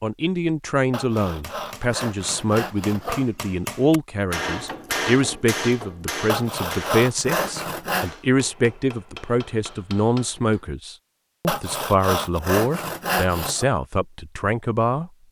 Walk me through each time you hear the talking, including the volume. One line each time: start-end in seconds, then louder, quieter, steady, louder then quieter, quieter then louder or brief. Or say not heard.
0.0-15.1 steady.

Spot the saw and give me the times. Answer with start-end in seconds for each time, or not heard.
0.9-3.3, 6.2-8.1, 11.4-13.7.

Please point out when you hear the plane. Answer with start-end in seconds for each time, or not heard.
not heard.